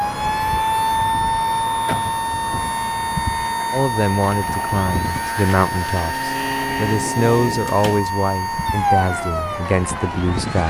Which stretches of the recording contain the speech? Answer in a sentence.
You can hear the speech from 3.7 to 10.6 s.